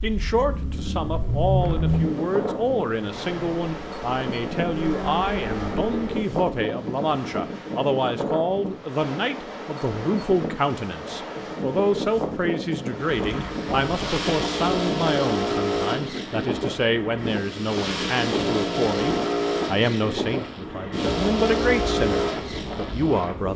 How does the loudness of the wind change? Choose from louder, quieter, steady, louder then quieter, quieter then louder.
steady.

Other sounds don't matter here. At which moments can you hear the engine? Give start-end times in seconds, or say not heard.
0.0-6.2, 13.0-23.5.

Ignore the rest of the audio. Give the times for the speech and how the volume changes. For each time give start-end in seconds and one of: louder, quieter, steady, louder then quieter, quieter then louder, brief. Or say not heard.
0.0-23.5 steady.